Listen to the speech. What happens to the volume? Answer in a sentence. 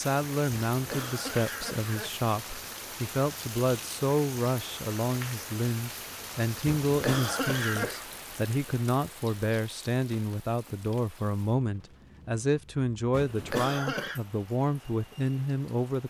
The loudness of the speech stays about the same.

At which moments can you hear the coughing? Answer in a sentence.
The coughing can be heard from 0.7 to 2.1 s, from 6.7 to 8.1 s and from 13.1 to 14.2 s.